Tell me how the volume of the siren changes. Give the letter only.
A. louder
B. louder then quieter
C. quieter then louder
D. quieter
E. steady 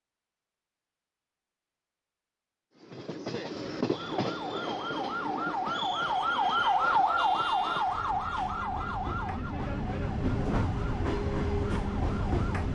B.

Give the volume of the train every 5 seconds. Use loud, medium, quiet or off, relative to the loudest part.
loud, medium, loud.